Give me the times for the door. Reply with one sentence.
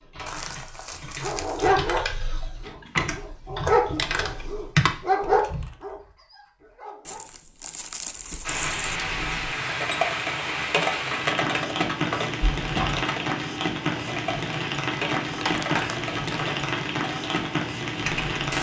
The door can be heard from 2.6 to 3.2 s and from 12.6 to 13.1 s.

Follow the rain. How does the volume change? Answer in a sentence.
The loudness of the rain stays about the same.